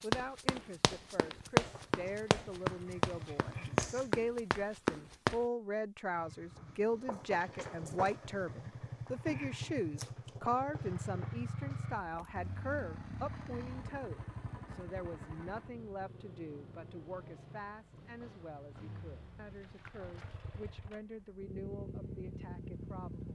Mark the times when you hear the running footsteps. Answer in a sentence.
The running footsteps can be heard from 0.0 to 5.4 s.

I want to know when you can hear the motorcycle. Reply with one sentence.
You can hear the motorcycle from 1.6 to 4.2 s and from 6.2 to 23.3 s.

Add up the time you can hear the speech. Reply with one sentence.
You can hear the speech for 23 seconds altogether.